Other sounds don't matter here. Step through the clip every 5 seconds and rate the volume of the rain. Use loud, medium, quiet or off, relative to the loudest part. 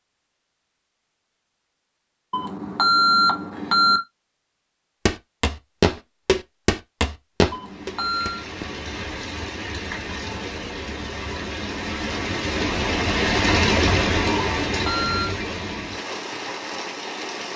off, medium, loud, medium.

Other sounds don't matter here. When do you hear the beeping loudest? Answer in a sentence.
The loudest moment of the beeping is at 3 seconds.